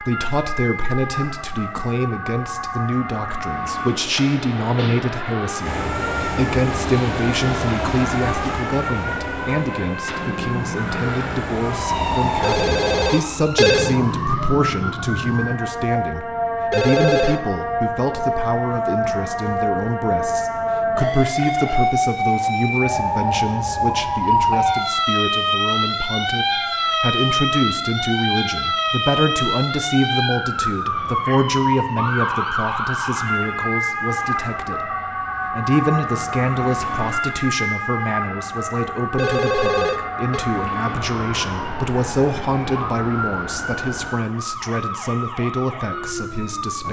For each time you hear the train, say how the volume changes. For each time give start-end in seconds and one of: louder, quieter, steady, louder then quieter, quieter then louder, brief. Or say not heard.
5.6-13.2 quieter then louder.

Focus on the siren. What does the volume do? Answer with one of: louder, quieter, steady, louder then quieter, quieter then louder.
louder then quieter.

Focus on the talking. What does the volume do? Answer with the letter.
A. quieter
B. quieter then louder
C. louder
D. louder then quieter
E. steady
E.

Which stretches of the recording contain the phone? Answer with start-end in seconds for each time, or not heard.
12.4-14.0, 16.7-17.4, 39.1-40.5.